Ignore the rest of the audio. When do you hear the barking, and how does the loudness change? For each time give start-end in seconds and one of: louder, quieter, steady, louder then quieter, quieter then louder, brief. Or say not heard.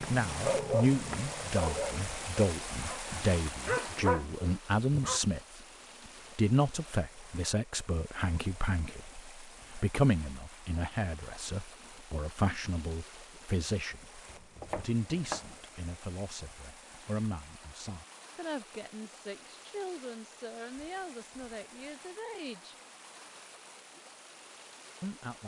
0.0-5.2 quieter then louder.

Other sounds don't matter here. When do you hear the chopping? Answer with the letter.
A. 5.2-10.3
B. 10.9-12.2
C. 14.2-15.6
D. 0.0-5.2
C.